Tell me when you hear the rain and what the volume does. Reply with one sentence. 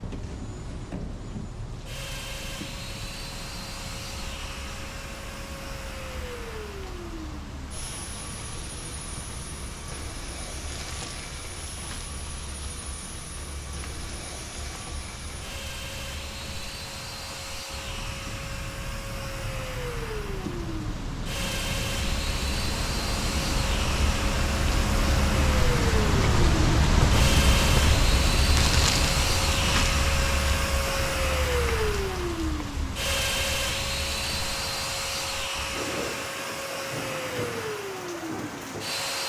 The rain can be heard from 0.0 to 39.2 s, getting louder then quieter.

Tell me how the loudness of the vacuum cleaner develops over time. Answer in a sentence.
The loudness of the vacuum cleaner goes up.